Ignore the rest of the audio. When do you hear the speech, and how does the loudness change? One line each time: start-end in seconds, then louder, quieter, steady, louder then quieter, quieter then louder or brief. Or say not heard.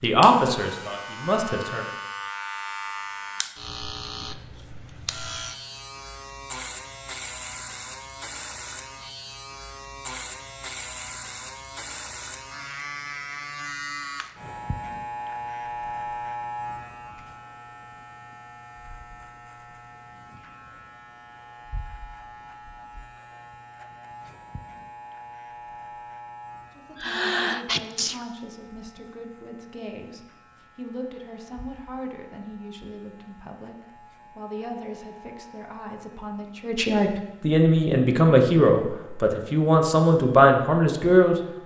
0.0-1.9 brief
26.8-41.4 louder.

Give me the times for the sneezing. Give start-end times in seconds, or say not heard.
26.9-28.2.